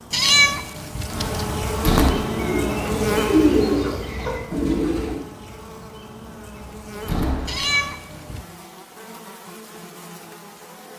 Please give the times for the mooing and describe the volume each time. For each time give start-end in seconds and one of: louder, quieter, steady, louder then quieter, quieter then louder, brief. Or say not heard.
not heard.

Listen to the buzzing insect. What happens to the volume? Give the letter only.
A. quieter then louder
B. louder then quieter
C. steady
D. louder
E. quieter
E.